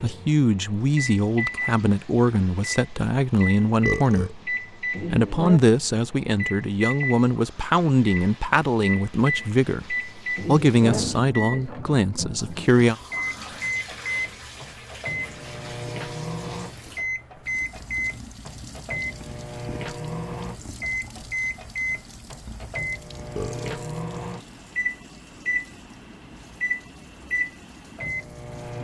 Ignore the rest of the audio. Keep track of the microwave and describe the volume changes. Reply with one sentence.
The volume of the microwave stays about the same.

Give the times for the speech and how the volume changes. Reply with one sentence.
You can hear the speech from 0.0 to 12.9 s, at a steady volume.